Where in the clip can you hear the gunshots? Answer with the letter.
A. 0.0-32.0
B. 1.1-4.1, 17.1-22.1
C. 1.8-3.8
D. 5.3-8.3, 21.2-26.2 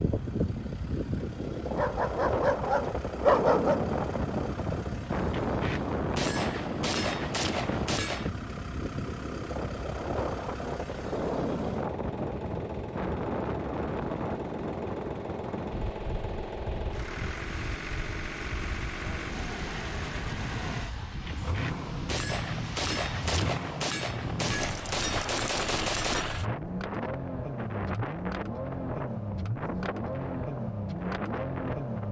D.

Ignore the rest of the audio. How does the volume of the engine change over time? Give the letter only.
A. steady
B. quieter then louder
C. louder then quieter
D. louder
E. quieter
D.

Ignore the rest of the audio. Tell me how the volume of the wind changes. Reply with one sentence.
The volume of the wind goes down.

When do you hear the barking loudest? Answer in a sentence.
The loudest moment of the barking is at 3 seconds.